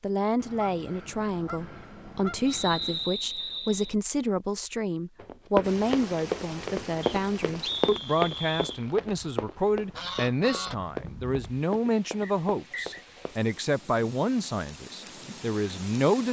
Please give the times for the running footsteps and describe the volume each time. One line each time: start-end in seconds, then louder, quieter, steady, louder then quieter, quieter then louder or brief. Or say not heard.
5.2-13.4 quieter.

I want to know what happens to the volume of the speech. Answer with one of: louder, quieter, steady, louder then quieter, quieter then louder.
steady.